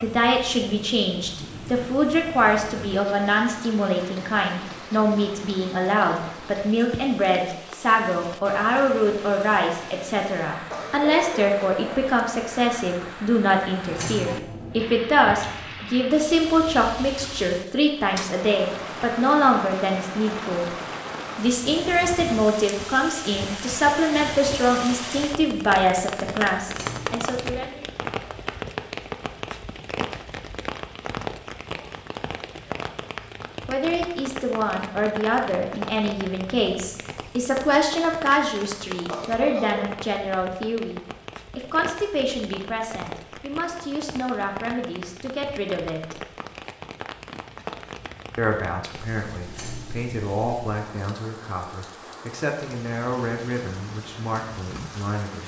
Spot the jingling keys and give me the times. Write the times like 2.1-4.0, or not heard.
13.8-14.8, 26.6-27.6, 49.5-50.1.